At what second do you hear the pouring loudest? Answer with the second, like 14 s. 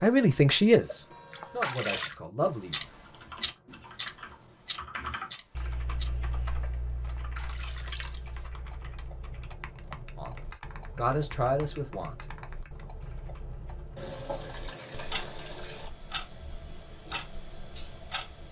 2 s.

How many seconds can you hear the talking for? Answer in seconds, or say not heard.
5 s.